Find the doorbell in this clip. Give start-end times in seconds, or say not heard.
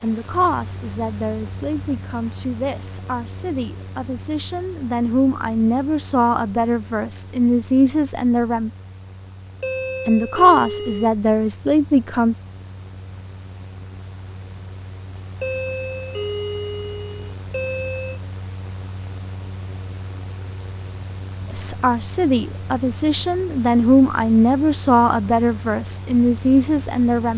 9.6-11.1, 15.4-18.2.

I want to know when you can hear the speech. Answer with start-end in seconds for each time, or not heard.
0.0-8.7, 10.1-12.3, 21.5-27.3.